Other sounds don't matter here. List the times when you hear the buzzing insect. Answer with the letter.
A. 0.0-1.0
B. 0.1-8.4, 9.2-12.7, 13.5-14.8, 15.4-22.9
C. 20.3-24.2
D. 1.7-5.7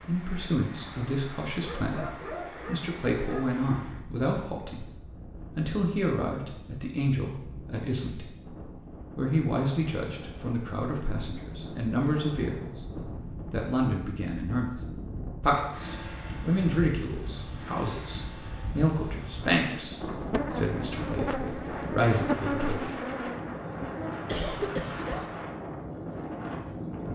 C.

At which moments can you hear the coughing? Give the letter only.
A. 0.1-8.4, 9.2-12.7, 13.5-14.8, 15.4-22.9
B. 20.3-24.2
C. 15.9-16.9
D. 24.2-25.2
D.